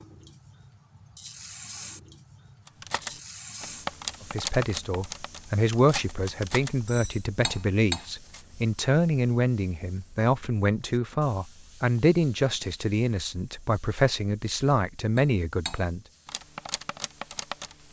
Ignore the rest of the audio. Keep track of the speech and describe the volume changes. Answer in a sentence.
The volume of the speech stays about the same.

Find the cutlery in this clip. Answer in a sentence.
You can hear the cutlery from 2.6 to 8.4 s and from 15.2 to 17.8 s.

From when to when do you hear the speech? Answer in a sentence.
You can hear the speech from 4.2 to 16.0 s.